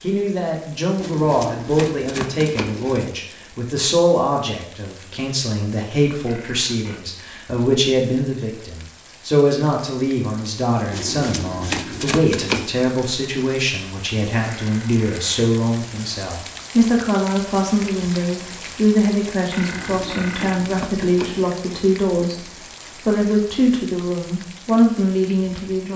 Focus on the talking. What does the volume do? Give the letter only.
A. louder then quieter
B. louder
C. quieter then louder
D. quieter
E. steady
E.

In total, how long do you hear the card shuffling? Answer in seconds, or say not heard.
6 s.